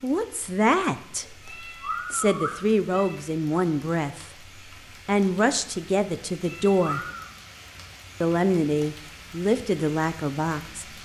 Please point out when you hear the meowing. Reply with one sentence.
The meowing can be heard from 1.2 to 3.1 s and from 6.5 to 7.3 s.